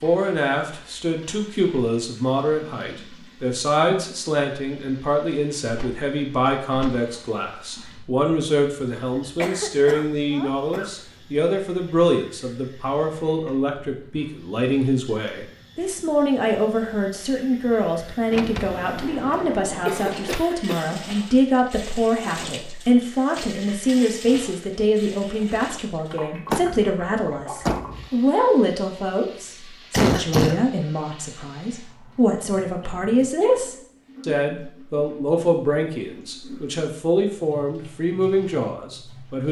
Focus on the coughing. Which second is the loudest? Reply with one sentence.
The loudest moment of the coughing is at 30 seconds.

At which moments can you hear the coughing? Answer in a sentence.
The coughing can be heard from 9.2 to 10.9 s, from 19.9 to 21.0 s and from 29.9 to 30.6 s.